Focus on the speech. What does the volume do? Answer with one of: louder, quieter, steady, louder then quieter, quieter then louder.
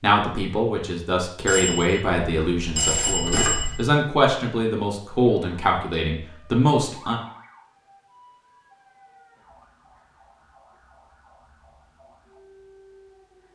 steady.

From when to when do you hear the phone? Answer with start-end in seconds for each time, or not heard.
1.4-3.9.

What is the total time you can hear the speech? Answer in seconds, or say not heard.
7 s.